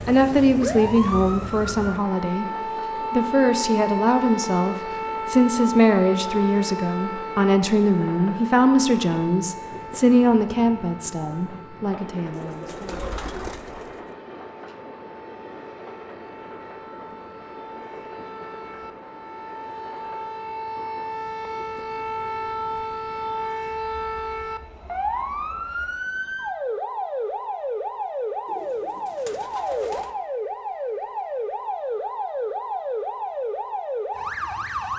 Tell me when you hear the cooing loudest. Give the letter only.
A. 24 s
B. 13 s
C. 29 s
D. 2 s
B.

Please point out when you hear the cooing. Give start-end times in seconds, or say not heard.
12.3-14.1, 28.4-30.1.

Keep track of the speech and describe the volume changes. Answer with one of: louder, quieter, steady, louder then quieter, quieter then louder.
steady.